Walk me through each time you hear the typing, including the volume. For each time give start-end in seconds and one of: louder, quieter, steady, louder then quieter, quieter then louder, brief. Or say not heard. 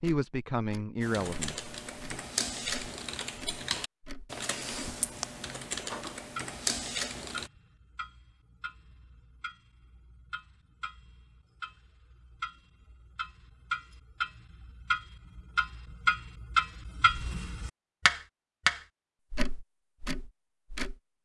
1.0-7.5 steady.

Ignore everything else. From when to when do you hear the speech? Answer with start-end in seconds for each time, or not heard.
0.0-1.7.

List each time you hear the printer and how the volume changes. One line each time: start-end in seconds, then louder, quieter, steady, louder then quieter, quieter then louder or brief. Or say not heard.
not heard.